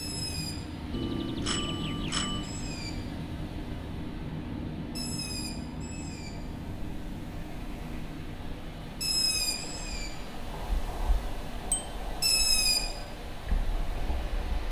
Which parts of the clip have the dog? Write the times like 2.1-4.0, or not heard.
not heard.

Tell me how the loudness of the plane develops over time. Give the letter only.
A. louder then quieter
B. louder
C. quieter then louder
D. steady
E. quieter
E.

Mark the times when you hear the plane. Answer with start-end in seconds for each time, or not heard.
0.0-14.6.